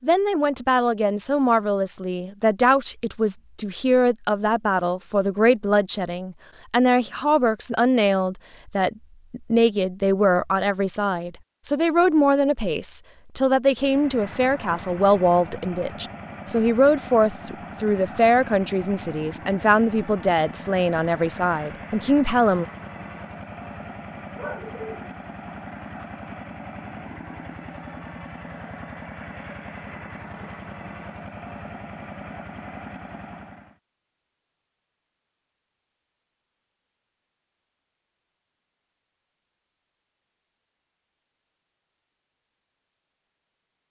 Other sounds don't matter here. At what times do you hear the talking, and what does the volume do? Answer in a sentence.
The talking can be heard from 0.0 to 22.6 s, at a steady volume.